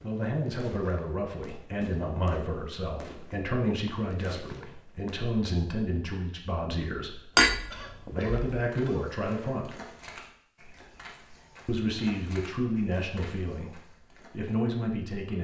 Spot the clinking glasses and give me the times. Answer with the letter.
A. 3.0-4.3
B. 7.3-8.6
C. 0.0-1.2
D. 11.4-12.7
B.